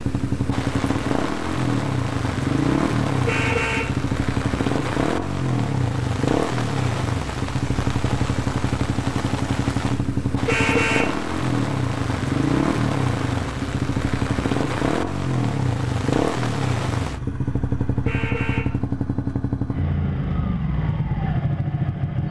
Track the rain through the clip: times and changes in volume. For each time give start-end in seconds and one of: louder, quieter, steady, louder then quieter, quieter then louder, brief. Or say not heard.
0.0-17.2 steady.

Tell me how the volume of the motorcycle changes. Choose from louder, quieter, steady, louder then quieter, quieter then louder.
steady.